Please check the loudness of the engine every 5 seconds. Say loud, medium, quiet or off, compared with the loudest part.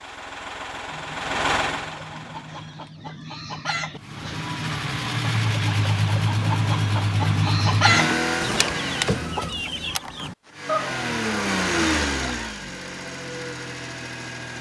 medium, loud, loud.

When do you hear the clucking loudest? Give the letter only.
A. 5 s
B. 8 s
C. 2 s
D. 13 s
B.